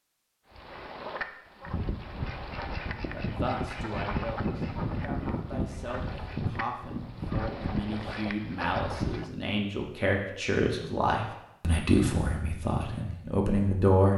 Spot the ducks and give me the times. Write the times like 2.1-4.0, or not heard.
0.5-9.2.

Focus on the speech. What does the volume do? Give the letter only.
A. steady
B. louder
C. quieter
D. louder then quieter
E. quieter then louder
B.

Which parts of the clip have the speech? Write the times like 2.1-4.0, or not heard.
3.1-14.1.